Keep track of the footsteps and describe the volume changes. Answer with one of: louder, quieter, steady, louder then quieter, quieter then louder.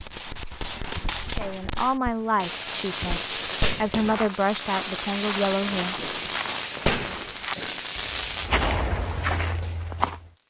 louder.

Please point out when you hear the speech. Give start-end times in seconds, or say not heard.
1.4-6.5.